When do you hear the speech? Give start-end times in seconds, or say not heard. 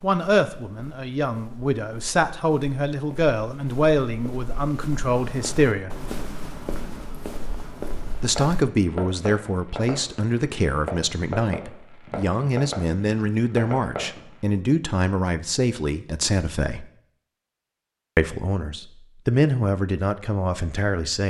0.0-5.9, 8.2-16.9, 18.1-21.2.